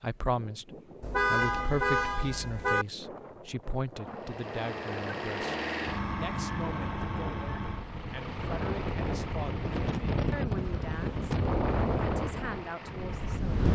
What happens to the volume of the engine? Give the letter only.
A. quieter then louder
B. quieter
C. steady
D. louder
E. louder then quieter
B.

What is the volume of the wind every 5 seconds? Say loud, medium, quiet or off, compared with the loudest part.
quiet, medium, loud.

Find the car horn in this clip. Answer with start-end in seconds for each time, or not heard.
1.0-2.9.